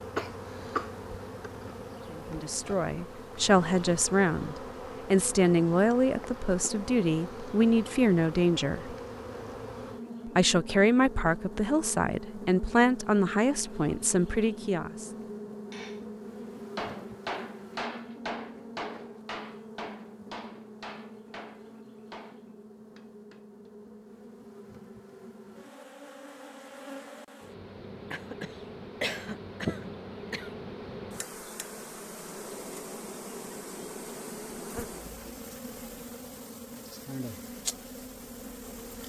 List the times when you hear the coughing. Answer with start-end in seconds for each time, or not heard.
0.1-0.9, 28.1-30.5.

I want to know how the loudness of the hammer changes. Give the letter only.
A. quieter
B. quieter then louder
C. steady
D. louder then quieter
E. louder
A.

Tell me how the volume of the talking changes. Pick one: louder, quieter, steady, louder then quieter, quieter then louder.
steady.